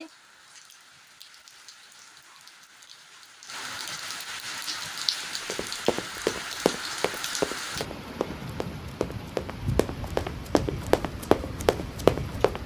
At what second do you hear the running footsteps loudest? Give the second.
12 s.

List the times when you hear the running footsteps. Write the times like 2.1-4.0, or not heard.
5.5-12.6.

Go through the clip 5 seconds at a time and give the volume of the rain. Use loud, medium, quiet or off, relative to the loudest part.
medium, loud, loud.